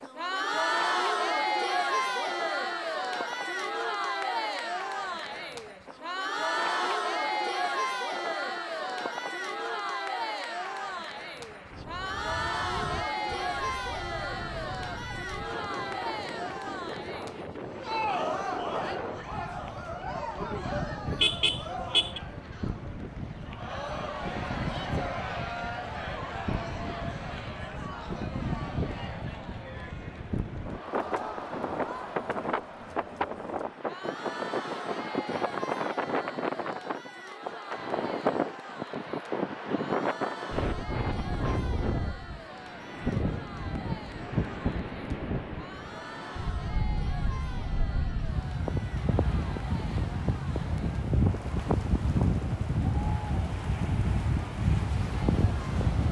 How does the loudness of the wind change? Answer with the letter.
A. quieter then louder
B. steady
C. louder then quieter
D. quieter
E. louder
E.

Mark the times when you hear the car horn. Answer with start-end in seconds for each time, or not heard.
21.2-22.2.